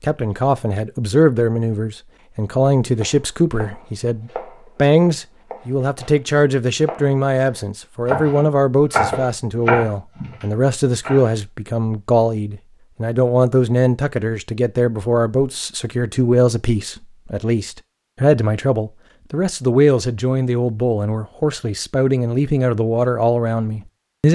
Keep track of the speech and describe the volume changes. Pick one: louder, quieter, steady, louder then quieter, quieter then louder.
steady.